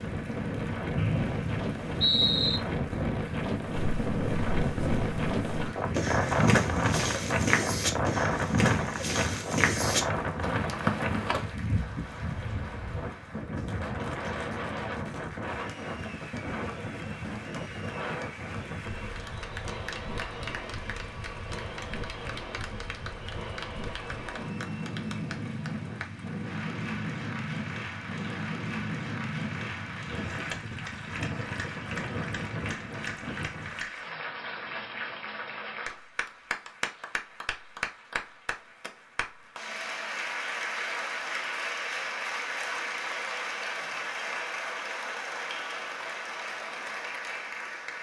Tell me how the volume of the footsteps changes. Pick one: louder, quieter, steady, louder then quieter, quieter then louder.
louder.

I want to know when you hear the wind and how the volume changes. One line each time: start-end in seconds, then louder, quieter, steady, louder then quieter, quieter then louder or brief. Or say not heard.
0.0-33.9 quieter.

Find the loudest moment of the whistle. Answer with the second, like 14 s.
2 s.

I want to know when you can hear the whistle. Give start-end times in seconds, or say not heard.
0.9-2.6.